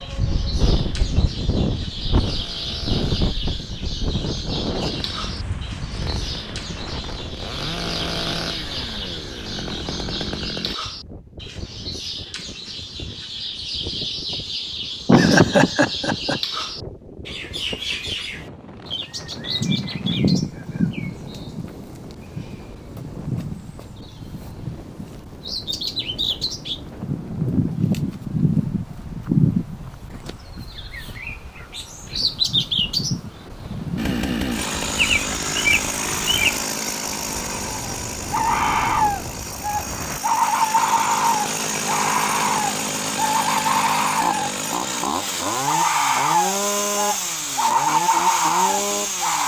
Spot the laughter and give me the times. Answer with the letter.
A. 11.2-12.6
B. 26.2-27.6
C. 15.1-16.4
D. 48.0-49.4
C.